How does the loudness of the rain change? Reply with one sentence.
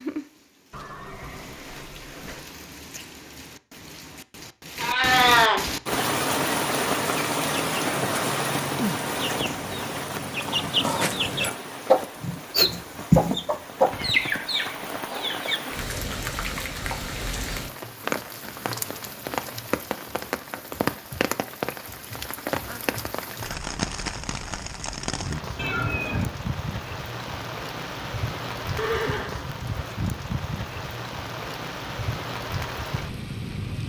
The volume of the rain stays about the same.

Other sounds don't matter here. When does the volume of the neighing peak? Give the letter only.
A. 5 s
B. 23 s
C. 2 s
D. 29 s
D.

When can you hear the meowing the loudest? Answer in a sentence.
The volume of the meowing peaks at 5 seconds.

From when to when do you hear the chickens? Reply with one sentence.
You can hear the chickens from 5.8 to 15.6 s.